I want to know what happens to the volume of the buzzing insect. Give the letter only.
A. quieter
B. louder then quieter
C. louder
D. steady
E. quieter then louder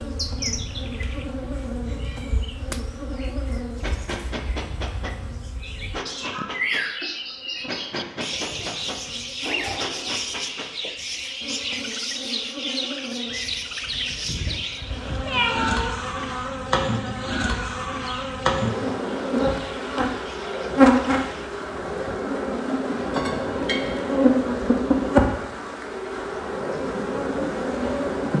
C.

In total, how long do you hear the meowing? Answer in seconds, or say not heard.
3 s.